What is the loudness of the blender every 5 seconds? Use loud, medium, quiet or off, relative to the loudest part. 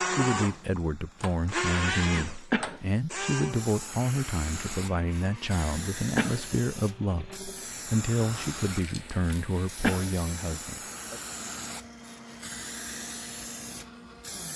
loud, quiet, quiet.